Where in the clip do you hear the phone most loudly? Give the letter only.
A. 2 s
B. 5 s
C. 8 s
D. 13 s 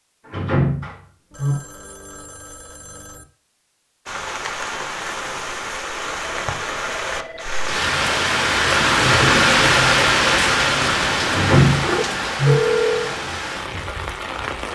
D.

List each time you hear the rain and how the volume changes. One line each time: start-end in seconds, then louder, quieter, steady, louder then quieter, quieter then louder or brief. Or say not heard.
4.0-14.6 louder then quieter.